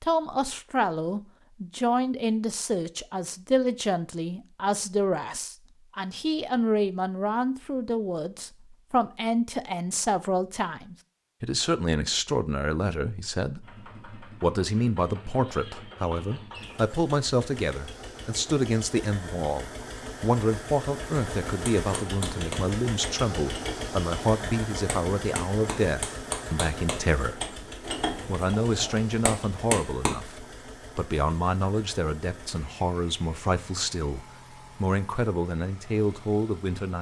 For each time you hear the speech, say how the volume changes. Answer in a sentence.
The speech can be heard from 0.0 to 27.6 s, at a steady volume; and from 28.2 to 36.9 s, at a steady volume.